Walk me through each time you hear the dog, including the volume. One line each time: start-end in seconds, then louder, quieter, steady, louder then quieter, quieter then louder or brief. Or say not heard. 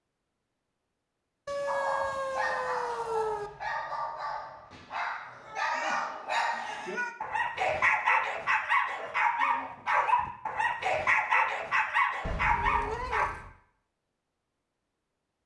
1.6-13.2 louder.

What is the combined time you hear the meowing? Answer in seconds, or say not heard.
5 s.